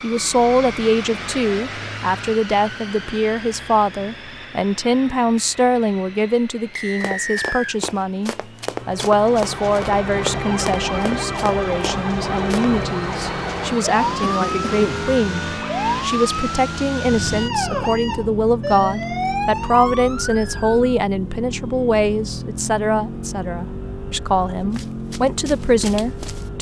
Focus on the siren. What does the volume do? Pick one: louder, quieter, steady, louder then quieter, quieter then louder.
steady.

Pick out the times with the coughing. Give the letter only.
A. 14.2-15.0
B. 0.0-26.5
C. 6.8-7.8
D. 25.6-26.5
A.